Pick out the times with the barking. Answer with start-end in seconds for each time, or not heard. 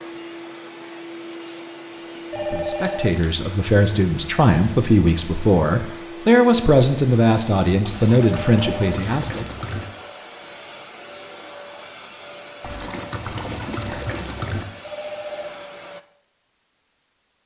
not heard.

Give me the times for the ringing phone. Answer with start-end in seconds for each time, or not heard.
2.3-3.2, 8.2-9.1, 14.8-15.6.